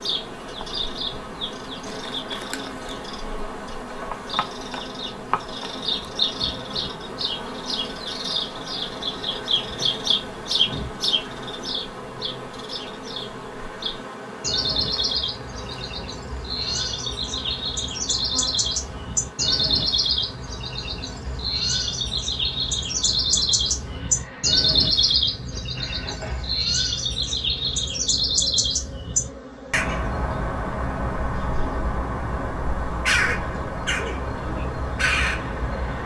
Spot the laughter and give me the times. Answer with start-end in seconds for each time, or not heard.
not heard.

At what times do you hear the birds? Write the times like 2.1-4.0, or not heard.
0.0-36.0.